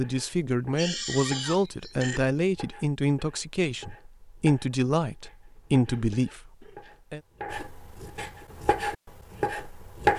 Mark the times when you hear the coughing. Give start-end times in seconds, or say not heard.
0.7-2.3, 5.8-7.0.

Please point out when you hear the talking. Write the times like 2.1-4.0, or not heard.
0.0-7.2.